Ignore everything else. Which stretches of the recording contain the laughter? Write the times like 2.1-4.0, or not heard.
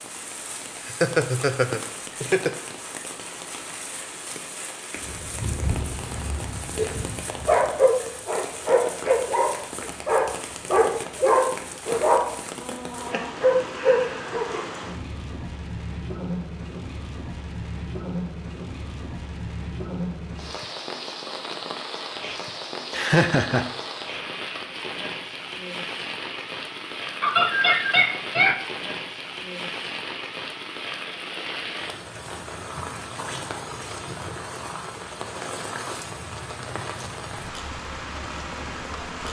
0.8-2.5, 22.9-23.6, 27.2-28.6.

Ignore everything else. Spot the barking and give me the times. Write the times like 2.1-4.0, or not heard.
5.0-14.7.